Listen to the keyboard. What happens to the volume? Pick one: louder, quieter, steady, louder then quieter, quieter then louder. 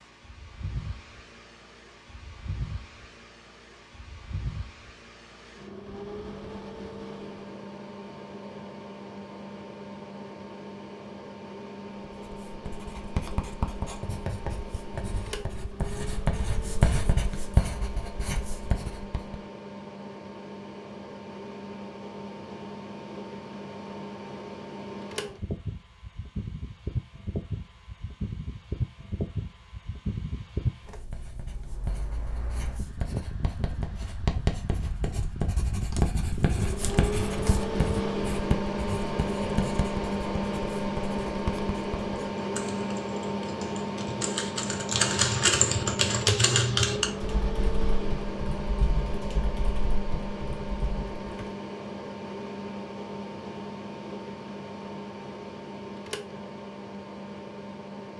louder then quieter.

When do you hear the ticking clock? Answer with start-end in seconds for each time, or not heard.
not heard.